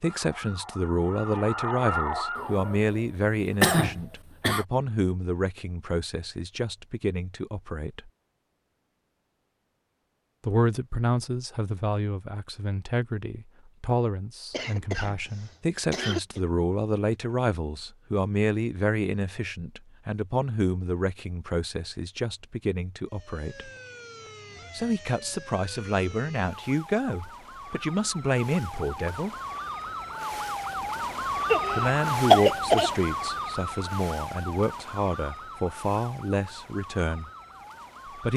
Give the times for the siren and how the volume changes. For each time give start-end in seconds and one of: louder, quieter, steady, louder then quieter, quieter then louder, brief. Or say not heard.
0.0-2.9 brief
23.1-38.3 louder then quieter.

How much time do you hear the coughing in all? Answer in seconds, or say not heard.
5 s.